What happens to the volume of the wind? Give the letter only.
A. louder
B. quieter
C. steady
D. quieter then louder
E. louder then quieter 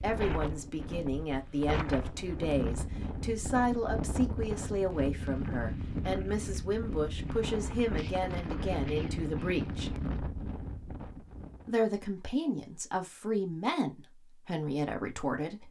C.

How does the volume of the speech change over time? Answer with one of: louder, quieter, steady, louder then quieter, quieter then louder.
steady.